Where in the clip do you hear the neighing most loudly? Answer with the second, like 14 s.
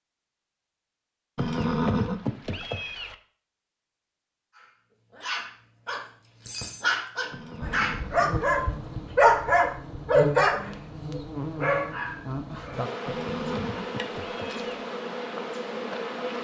2 s.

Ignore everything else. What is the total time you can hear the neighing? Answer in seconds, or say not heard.
5 s.